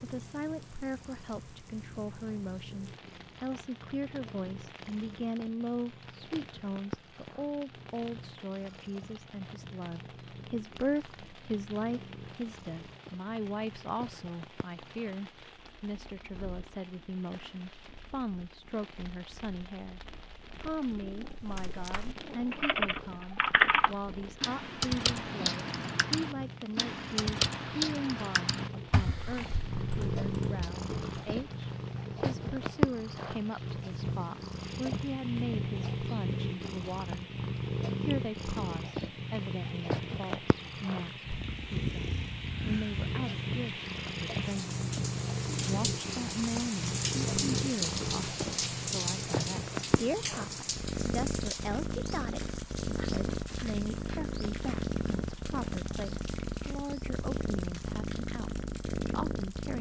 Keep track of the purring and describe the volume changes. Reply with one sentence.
The loudness of the purring goes up.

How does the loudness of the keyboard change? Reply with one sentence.
The loudness of the keyboard goes down.